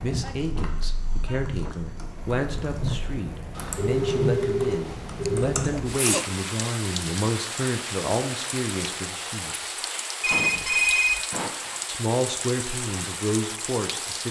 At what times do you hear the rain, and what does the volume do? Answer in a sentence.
The rain can be heard from 0.0 to 14.2 s, at a steady volume.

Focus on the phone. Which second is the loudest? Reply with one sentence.
The volume of the phone peaks at 11 seconds.